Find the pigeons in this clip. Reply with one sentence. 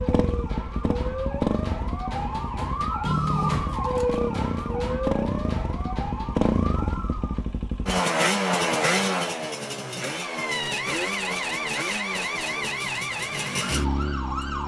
You can't hear the pigeons here.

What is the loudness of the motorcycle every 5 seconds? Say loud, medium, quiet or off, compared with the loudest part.
medium, loud, medium.